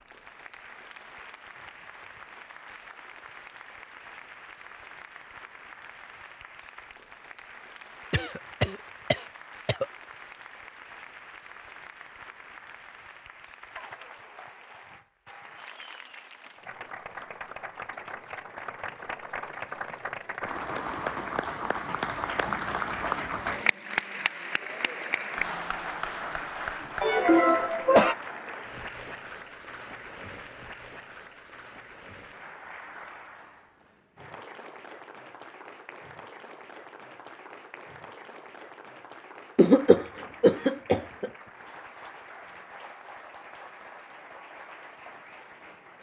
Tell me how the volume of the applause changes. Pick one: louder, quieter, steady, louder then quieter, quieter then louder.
louder then quieter.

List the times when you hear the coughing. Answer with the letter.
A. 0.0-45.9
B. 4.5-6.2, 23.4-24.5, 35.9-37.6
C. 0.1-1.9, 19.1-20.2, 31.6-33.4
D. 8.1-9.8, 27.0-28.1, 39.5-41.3
D.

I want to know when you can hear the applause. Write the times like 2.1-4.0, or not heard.
0.0-45.9.